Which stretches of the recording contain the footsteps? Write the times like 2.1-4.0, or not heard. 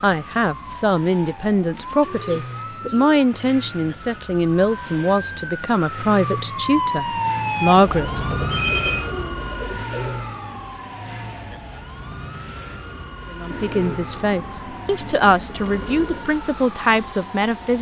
not heard.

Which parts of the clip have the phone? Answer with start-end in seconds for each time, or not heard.
8.4-9.1.